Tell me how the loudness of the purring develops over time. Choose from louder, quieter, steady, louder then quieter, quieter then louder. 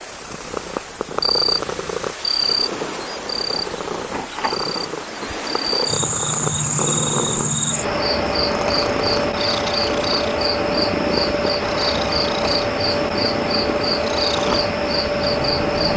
steady.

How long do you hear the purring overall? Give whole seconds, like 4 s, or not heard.
16 s.